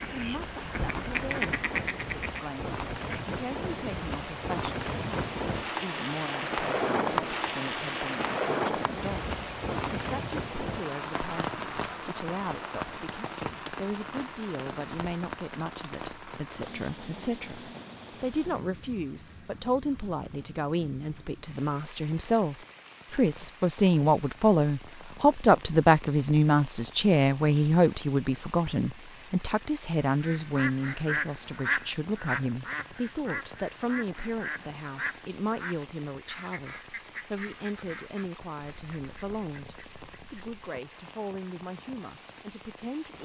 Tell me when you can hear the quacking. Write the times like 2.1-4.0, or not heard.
0.0-3.2, 30.2-40.5.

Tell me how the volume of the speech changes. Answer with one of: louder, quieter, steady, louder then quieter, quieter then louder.
louder then quieter.